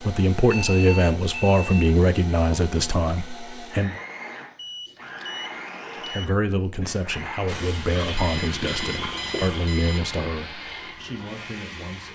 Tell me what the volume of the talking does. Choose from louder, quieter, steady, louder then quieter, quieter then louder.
quieter.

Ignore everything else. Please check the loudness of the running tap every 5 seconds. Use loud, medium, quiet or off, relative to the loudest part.
off, loud, medium.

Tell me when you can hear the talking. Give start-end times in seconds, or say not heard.
0.0-4.0, 6.0-12.0.